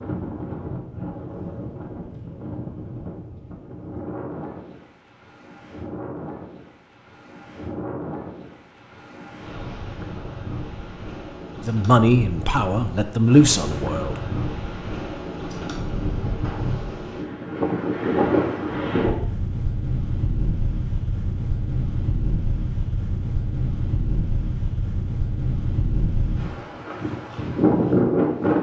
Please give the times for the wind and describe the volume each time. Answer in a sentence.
You can hear the wind from 0.0 to 28.5 s, getting louder.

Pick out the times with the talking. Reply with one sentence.
You can hear the talking from 11.6 to 14.2 s.